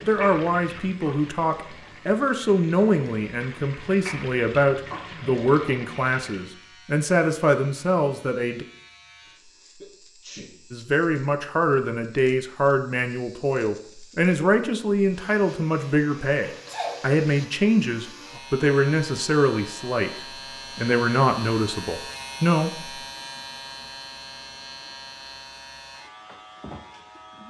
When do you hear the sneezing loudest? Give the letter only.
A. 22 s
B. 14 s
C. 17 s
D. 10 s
C.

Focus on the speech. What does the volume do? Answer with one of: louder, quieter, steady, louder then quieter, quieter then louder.
steady.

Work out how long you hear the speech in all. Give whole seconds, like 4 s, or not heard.
21 s.